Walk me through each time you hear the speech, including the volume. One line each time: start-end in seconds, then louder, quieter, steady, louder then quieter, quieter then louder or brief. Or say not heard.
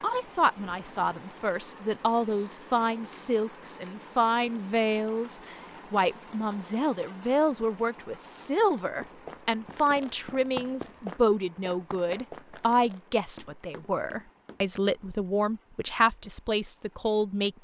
0.0-17.5 steady.